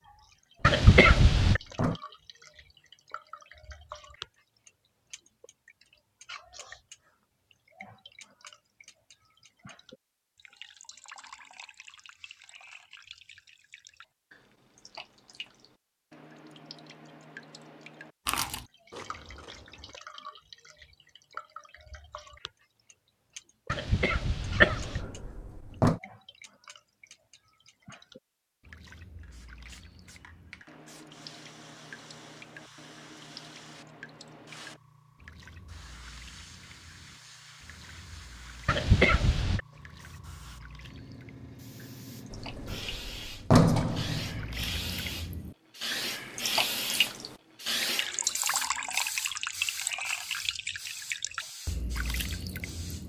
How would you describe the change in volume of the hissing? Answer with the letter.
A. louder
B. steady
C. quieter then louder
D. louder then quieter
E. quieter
D.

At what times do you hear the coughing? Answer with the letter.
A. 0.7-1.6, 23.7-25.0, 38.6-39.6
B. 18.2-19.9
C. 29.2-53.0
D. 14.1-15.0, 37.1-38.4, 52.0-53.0
A.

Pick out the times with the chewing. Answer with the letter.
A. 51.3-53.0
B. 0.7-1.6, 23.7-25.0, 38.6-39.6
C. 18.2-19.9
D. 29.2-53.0
C.